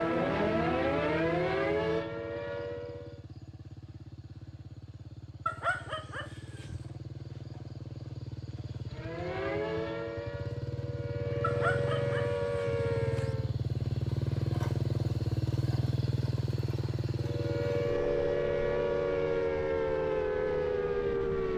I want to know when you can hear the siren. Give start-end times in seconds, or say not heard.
0.0-3.2, 8.9-13.6, 17.1-21.5.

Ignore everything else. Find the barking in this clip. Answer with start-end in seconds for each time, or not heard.
5.5-6.8, 11.4-13.3.